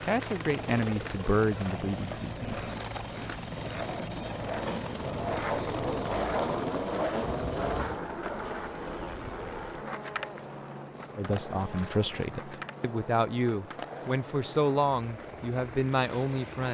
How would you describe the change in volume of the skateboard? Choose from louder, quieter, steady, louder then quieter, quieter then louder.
louder then quieter.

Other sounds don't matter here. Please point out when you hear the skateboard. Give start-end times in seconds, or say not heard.
0.0-16.6.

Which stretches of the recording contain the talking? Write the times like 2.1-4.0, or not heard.
0.0-2.6, 11.2-16.6.